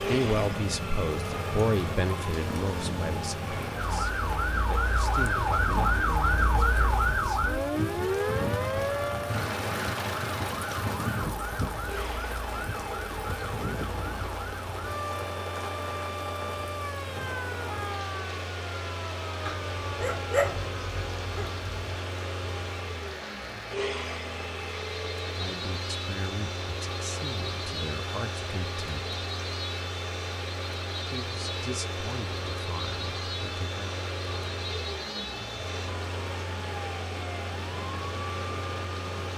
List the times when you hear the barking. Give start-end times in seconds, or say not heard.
19.4-21.9.